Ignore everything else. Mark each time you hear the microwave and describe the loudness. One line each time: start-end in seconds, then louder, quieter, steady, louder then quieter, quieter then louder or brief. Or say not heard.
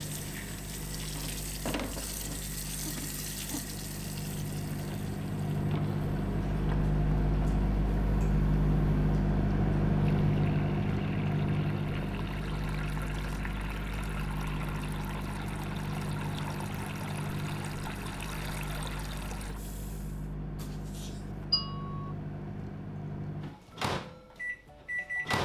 0.0-25.3 louder then quieter.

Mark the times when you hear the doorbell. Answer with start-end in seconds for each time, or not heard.
20.6-22.1.